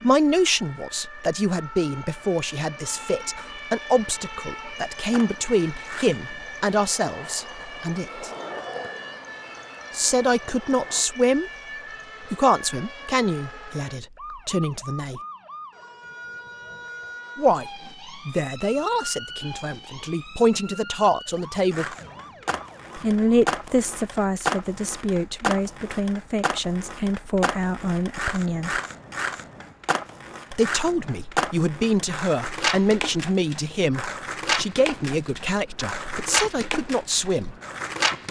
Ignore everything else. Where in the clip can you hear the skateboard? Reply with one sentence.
The skateboard can be heard from 5.0 to 11.1 s and from 21.7 to 38.2 s.